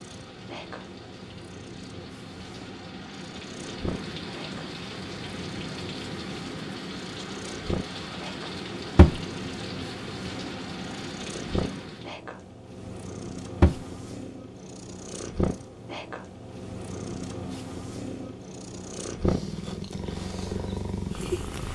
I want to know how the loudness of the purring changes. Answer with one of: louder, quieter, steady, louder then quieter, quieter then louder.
louder.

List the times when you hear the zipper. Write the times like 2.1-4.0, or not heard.
not heard.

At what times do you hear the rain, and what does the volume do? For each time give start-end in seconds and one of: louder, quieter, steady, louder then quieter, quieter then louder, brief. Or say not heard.
0.0-12.2 louder.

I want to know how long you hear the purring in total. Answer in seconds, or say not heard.
22 s.